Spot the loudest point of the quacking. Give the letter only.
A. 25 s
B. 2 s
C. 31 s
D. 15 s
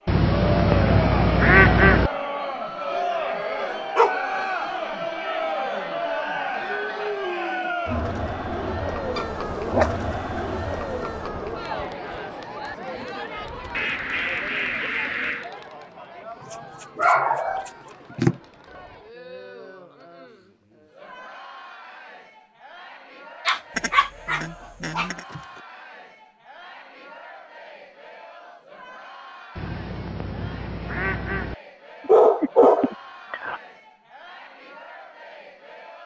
B.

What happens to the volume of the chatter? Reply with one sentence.
The volume of the chatter goes down.